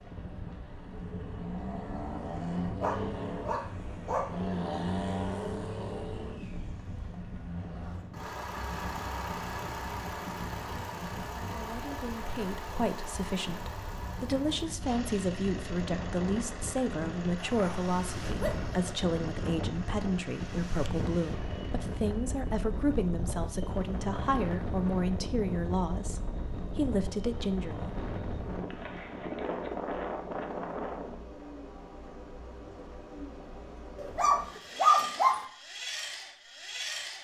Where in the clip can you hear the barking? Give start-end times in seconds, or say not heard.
2.8-4.3, 17.4-18.8, 34.0-35.5.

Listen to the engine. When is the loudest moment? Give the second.
5 s.